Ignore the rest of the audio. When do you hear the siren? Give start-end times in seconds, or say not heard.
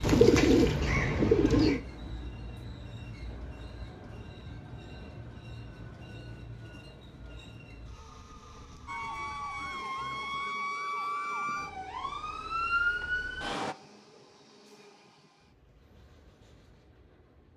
8.8-13.8.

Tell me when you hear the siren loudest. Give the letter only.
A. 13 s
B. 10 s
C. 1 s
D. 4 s
A.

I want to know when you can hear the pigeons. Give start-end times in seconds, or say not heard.
0.0-1.8.